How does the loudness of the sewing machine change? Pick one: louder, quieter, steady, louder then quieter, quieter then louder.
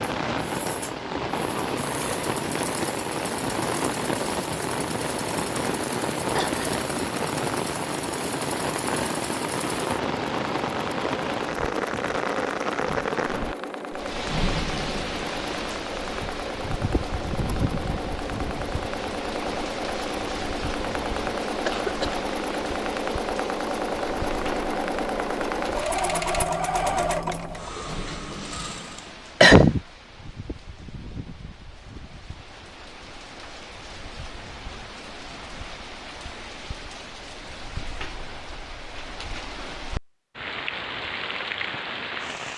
louder.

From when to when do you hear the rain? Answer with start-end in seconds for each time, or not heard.
0.0-42.5.